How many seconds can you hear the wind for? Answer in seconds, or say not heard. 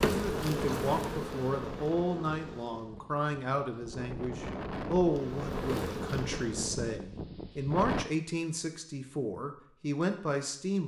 8 s.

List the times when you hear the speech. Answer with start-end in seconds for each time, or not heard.
0.0-10.8.